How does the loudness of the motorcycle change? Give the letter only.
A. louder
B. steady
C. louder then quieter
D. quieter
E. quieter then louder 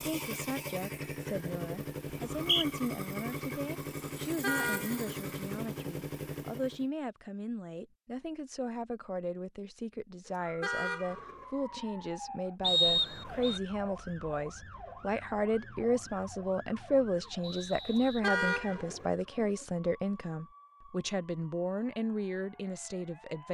B.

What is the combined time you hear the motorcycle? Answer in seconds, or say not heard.
7 s.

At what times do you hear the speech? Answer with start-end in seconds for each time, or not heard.
0.0-23.5.